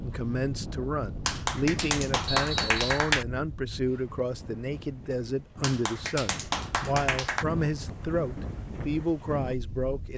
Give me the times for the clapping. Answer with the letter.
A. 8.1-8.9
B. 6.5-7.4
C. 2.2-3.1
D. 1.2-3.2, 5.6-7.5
D.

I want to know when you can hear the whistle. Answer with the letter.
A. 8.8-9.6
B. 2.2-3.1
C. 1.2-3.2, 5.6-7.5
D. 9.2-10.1
B.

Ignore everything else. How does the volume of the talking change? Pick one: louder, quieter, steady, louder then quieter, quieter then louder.
steady.